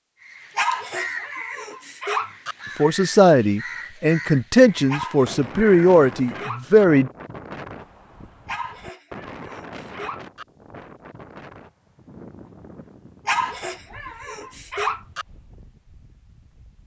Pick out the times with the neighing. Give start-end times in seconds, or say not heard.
not heard.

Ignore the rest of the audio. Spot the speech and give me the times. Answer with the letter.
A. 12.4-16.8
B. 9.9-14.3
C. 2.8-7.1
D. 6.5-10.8
C.